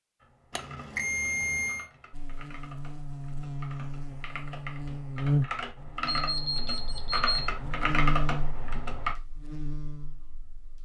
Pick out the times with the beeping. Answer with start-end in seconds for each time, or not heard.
0.6-1.9, 6.0-7.4.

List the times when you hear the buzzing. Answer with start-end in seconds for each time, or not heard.
2.1-10.7.